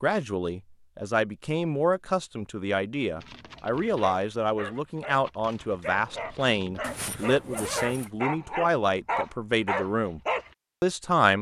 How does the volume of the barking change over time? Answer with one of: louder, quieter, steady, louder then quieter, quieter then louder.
louder.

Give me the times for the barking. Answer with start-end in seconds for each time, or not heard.
3.1-10.5.